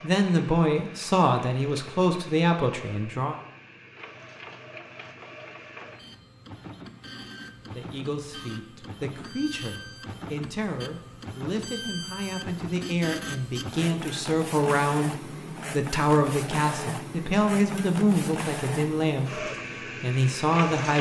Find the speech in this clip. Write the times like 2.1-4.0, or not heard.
0.0-3.4, 7.8-20.9.